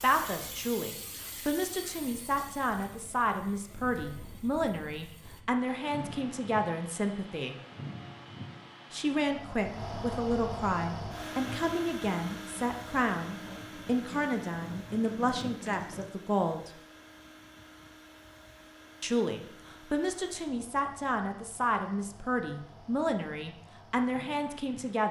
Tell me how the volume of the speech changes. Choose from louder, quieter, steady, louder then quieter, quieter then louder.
steady.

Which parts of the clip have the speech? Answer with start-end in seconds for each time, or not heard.
0.0-7.5, 8.9-16.7, 19.0-25.0.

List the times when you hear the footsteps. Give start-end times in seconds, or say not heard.
not heard.